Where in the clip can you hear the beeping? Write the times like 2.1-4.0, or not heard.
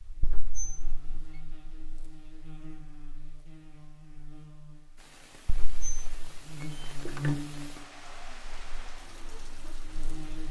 not heard.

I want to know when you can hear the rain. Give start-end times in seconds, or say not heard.
5.0-10.4.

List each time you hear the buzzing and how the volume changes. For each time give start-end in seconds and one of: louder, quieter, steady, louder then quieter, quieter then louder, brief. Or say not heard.
0.0-10.4 louder then quieter.